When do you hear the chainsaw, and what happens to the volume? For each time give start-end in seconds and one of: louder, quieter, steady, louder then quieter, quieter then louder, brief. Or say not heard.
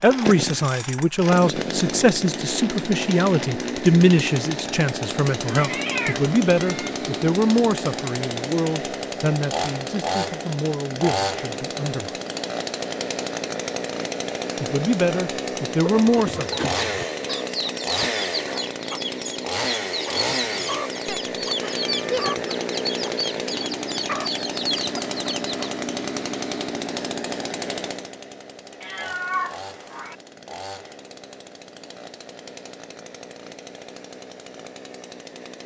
0.0-35.6 quieter.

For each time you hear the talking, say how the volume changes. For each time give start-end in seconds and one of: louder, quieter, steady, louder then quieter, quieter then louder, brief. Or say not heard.
0.0-12.2 quieter
14.6-16.6 brief.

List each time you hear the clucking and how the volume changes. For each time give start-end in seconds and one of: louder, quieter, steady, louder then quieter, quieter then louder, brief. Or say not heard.
15.8-25.7 steady.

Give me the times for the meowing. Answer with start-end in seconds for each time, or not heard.
5.5-6.9, 21.1-22.3, 28.8-30.1.